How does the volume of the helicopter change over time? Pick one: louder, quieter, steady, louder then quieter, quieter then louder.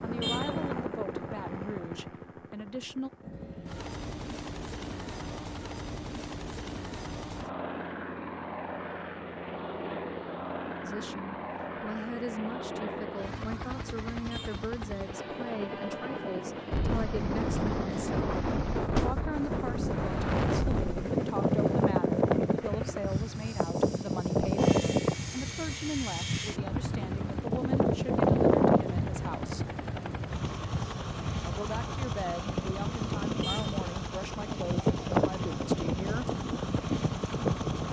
steady.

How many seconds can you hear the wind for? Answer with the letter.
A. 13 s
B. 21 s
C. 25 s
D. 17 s
B.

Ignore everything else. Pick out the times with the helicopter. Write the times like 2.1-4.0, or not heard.
0.0-37.8.